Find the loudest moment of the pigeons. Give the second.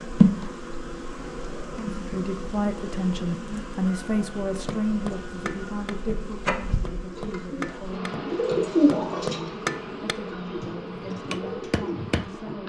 9 s.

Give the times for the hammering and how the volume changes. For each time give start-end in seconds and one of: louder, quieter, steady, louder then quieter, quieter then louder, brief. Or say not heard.
4.7-12.3 louder then quieter.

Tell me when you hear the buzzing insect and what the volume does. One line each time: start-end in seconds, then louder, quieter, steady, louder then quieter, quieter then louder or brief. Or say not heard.
0.0-12.6 steady.